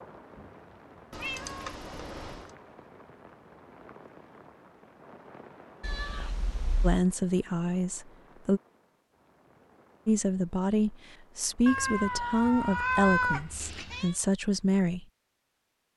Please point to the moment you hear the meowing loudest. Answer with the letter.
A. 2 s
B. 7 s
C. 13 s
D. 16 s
C.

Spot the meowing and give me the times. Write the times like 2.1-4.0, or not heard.
1.1-2.5, 5.8-7.0, 11.7-14.2.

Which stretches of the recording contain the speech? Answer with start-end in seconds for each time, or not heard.
6.8-8.6, 10.1-15.1.